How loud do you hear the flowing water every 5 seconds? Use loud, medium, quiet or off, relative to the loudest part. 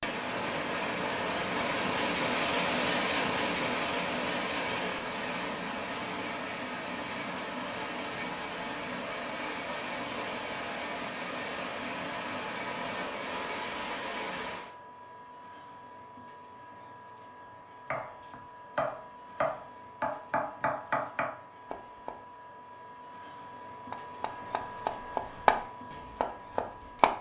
loud, medium, medium, off, off, off.